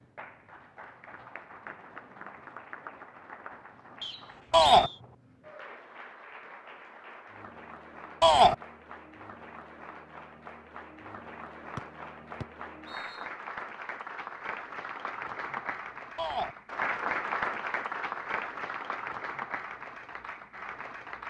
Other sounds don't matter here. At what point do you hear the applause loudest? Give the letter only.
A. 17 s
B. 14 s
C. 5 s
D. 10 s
A.